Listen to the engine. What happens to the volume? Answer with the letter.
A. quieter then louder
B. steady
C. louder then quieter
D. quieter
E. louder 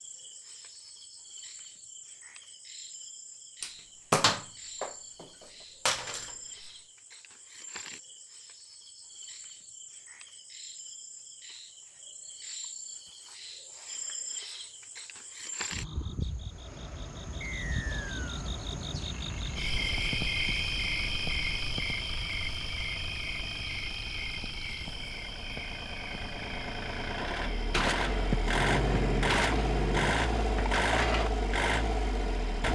E.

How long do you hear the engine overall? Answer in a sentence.
The engine can be heard for 16 seconds in total.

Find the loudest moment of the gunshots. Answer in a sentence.
The loudest moment of the gunshots is at 4 seconds.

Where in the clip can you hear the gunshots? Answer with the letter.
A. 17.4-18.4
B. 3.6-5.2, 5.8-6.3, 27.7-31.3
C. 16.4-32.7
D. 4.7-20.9
B.